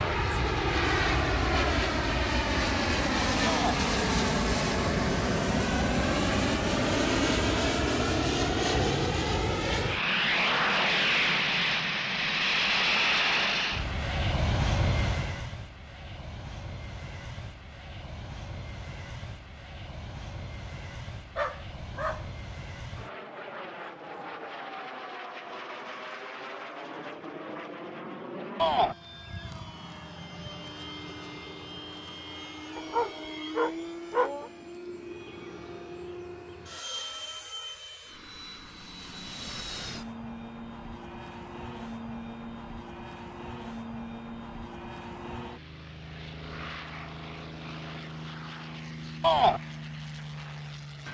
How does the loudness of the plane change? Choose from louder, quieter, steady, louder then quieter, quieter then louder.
quieter.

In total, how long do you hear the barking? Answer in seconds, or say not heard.
3 s.